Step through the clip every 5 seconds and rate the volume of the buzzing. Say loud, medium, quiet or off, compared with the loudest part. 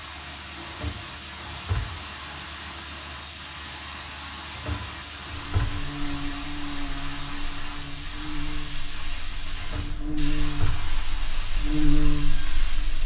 off, medium, loud.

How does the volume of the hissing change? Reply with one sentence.
The loudness of the hissing stays about the same.